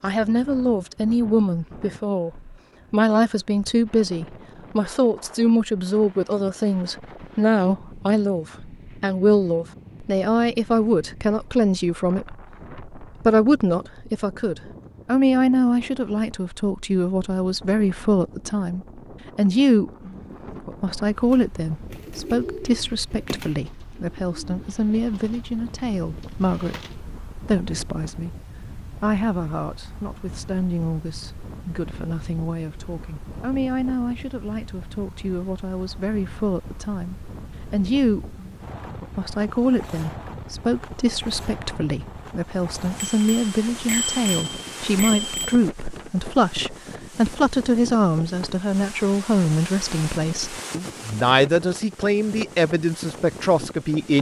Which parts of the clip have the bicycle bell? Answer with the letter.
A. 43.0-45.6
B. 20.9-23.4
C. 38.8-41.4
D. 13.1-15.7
A.